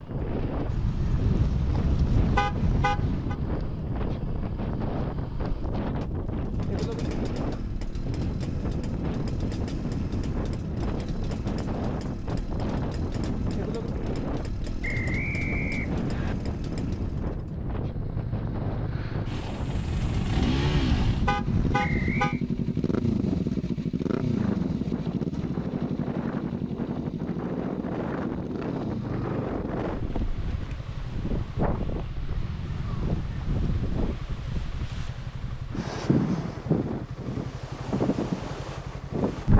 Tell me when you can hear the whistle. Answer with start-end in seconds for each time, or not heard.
14.8-16.4, 21.8-22.4.